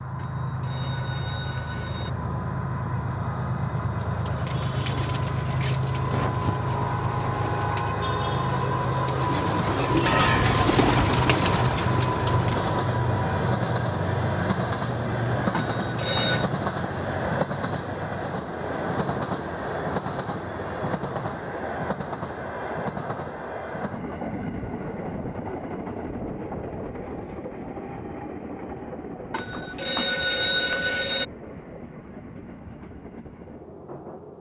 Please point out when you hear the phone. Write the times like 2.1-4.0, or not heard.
0.1-2.1, 15.5-16.4, 29.3-31.2.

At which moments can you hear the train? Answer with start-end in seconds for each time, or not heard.
0.0-34.3.